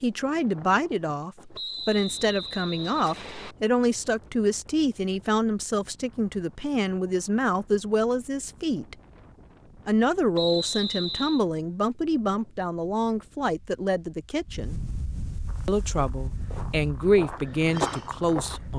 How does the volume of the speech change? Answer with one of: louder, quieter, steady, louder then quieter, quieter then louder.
steady.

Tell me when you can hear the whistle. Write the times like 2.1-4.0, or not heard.
1.6-3.5, 10.3-11.4.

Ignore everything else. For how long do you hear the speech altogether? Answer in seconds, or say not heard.
17 s.